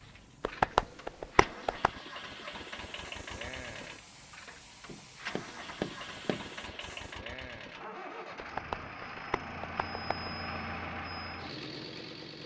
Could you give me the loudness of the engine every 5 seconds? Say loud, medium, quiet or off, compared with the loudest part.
medium, loud, loud.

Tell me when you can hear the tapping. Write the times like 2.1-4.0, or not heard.
0.4-1.9, 4.8-6.5, 8.3-10.3.